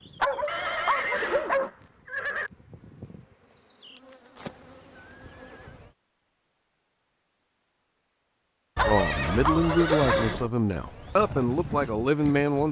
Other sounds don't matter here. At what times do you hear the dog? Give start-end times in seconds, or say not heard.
0.2-1.7, 8.8-10.2.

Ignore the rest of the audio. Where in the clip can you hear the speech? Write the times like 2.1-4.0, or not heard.
8.8-12.6.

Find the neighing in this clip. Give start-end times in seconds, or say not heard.
0.5-2.5, 4.3-5.8, 8.8-10.6.